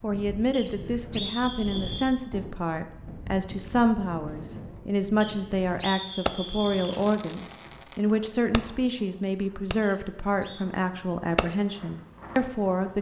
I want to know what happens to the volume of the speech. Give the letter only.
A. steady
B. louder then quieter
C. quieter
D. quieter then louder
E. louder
A.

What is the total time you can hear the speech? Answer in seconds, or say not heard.
13 s.